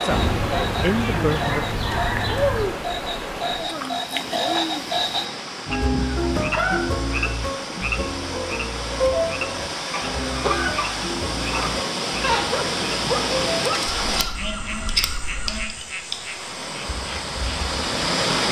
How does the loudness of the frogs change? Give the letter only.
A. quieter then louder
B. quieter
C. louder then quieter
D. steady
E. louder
B.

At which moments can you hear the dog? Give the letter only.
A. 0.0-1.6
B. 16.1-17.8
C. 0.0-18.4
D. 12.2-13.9
D.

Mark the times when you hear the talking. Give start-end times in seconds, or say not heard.
0.0-1.6.